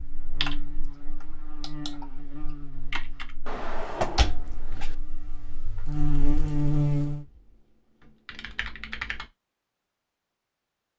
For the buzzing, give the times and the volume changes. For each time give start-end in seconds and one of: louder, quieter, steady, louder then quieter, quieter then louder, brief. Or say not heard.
0.0-7.2 quieter then louder.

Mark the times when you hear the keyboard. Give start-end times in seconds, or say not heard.
0.4-3.3, 7.2-9.3.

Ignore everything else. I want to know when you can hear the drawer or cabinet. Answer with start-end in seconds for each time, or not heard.
3.5-5.0.